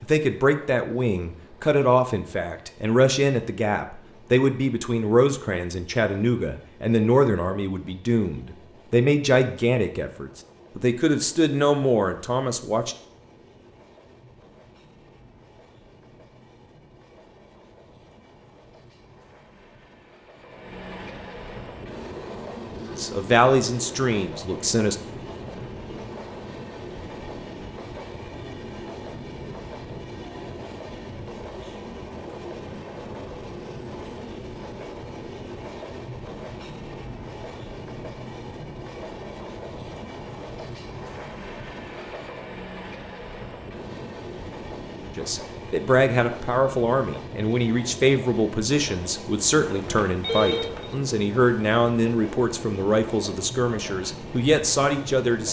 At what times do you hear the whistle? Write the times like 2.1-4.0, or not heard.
not heard.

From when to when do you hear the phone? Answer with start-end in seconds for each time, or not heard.
49.6-50.9.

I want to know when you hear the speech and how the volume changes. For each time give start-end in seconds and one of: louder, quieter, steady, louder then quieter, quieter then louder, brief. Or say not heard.
0.0-12.9 steady
22.9-24.9 brief
45.1-55.4 steady.